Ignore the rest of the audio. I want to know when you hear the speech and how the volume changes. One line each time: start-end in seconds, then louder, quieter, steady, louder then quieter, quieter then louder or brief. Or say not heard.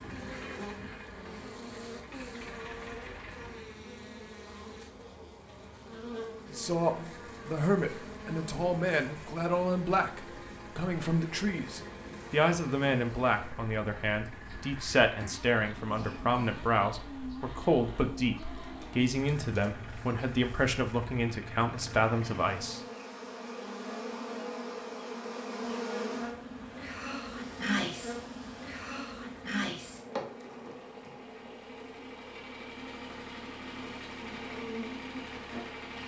6.5-22.8 steady.